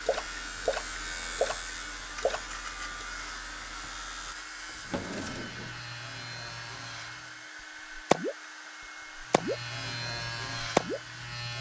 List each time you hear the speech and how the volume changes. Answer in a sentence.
The speech can't be heard in this clip.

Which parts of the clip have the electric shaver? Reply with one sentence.
The electric shaver can be heard from 0.0 to 7.5 s and from 9.2 to 11.5 s.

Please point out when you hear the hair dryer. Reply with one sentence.
You can hear the hair dryer from 0.0 to 11.4 s.